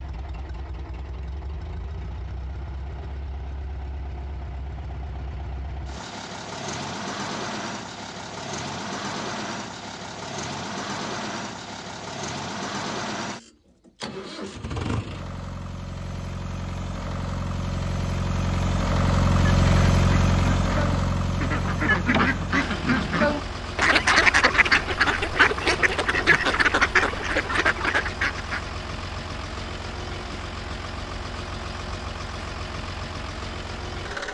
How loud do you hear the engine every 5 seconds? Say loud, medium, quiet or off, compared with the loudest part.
quiet, medium, medium, loud, loud, medium, medium.